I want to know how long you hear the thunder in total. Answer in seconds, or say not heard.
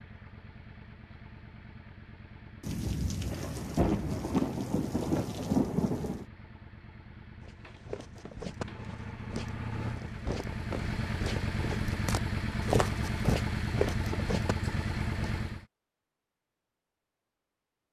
4 s.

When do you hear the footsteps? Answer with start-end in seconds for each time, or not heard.
7.4-15.3.